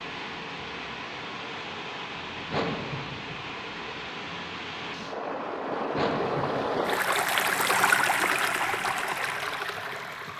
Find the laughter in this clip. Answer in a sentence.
The laughter can be heard from 2.5 to 3.4 s and from 5.9 to 6.7 s.